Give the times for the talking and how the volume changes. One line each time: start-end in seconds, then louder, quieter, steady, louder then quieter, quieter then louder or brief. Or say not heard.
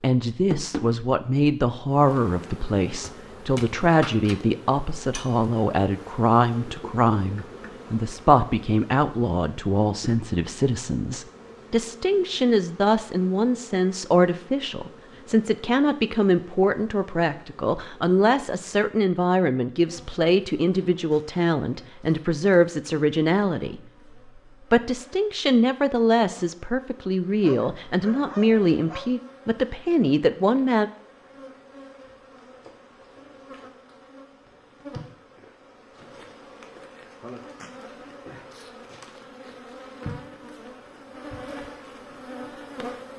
0.0-30.9 steady.